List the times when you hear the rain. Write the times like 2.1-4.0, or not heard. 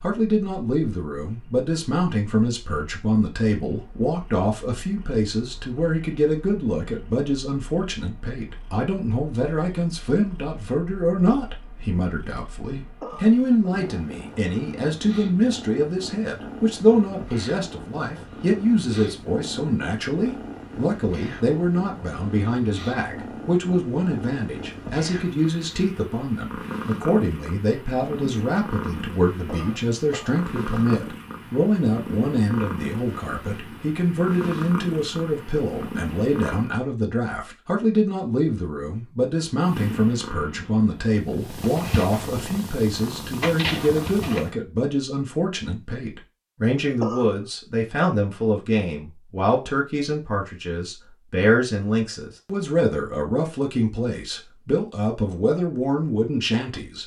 not heard.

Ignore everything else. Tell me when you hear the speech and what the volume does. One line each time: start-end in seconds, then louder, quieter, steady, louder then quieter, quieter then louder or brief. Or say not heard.
0.0-57.0 steady.